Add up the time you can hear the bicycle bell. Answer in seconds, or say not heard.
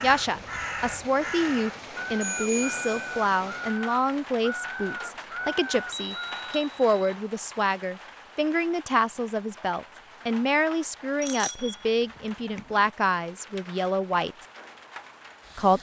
3 s.